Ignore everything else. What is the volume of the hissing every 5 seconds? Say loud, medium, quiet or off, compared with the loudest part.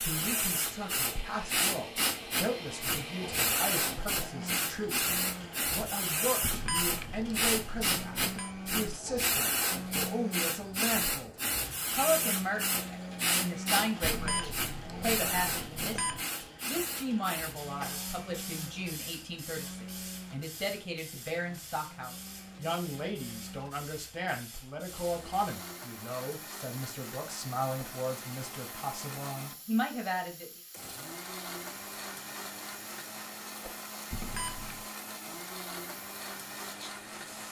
loud, loud, loud, medium, quiet, quiet, quiet, quiet.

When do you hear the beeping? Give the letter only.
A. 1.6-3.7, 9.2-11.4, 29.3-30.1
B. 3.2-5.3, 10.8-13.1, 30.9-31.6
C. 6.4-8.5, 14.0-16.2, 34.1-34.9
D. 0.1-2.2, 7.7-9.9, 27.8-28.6
C.